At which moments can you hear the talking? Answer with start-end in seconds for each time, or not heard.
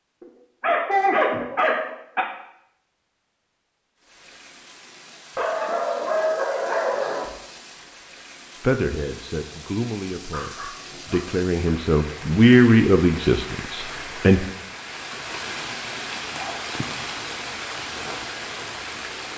8.6-14.4.